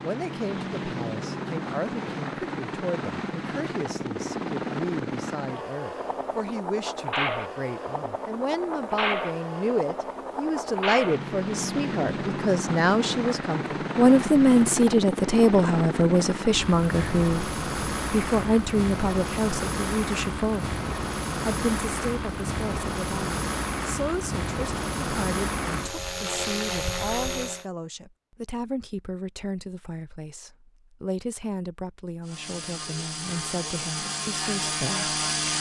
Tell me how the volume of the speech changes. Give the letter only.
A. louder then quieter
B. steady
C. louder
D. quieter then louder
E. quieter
A.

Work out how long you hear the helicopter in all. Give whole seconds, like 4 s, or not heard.
31 s.